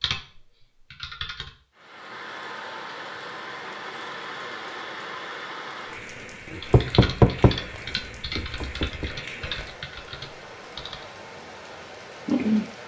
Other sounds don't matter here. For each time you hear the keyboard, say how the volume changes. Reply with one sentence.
You can hear the keyboard briefly from 0.0 to 1.5 s; and from 6.5 to 11.1 s, getting quieter.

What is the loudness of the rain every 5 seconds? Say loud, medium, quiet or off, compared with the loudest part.
medium, medium, loud.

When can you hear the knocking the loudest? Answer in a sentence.
The volume of the knocking peaks at 7 seconds.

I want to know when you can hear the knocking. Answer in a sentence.
You can hear the knocking from 6.7 to 9.1 s.